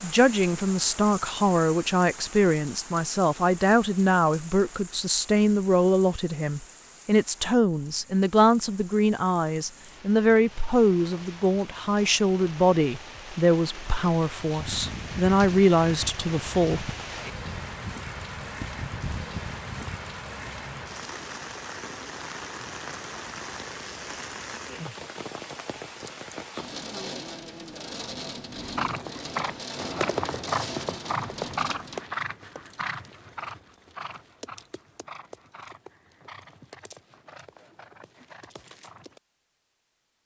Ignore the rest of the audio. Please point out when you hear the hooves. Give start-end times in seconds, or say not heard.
28.6-39.2.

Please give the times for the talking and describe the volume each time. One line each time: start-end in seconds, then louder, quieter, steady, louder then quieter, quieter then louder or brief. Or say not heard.
0.0-16.9 steady.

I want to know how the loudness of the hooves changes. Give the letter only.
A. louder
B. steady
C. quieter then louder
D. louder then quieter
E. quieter
E.